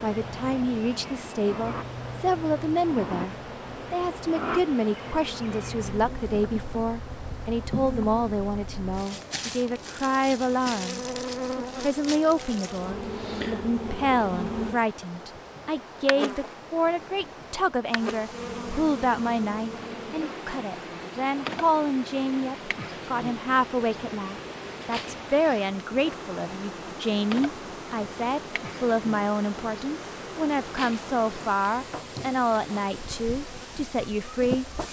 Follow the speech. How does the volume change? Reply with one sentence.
The volume of the speech stays about the same.